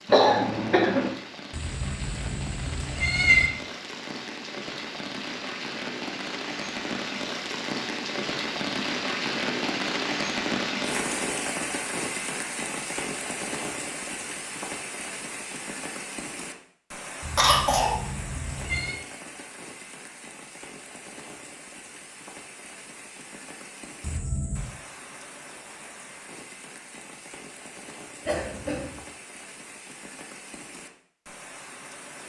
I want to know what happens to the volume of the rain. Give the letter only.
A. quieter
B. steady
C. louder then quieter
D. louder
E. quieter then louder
C.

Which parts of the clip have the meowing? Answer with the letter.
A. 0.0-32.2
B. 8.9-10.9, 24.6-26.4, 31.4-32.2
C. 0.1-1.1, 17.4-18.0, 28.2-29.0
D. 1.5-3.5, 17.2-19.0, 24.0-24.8
D.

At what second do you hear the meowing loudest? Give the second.
3 s.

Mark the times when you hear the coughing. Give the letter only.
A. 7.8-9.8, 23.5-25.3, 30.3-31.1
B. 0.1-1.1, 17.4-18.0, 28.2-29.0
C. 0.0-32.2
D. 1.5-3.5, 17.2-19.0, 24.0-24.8
B.